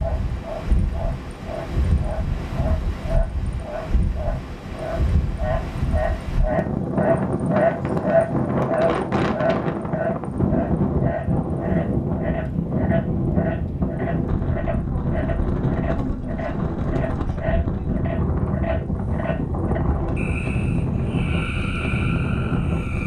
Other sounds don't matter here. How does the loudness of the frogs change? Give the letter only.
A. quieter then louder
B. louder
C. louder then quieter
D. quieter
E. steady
C.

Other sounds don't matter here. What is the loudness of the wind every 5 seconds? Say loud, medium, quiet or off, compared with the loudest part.
medium, loud, loud, loud, loud.